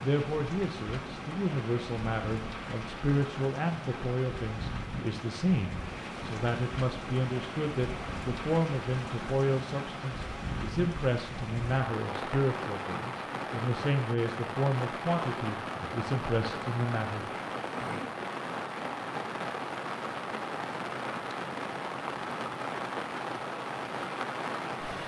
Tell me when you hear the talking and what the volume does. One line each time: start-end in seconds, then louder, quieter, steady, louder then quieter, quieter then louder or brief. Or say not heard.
0.0-17.6 steady.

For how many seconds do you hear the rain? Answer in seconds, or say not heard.
25 s.